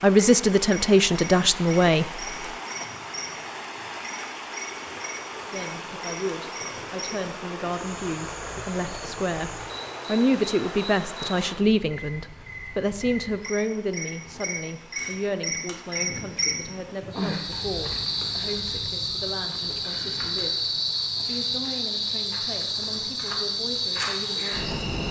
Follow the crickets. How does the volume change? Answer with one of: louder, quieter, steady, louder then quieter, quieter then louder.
louder.